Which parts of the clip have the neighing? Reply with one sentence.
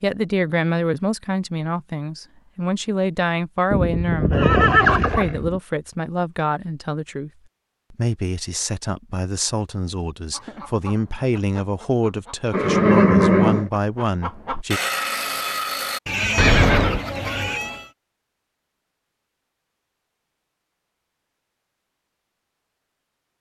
The neighing can be heard from 3.7 to 5.6 s, from 12.5 to 13.7 s and from 16.4 to 17.0 s.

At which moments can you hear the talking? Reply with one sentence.
The talking can be heard from 0.0 to 7.3 s and from 7.9 to 14.8 s.